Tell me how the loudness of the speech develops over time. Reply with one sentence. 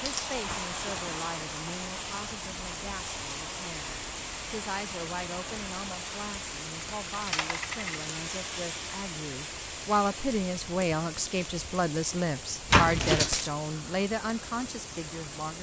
The volume of the speech goes up.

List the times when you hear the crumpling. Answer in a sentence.
You can hear the crumpling from 0.5 to 1.2 s and from 12.7 to 13.3 s.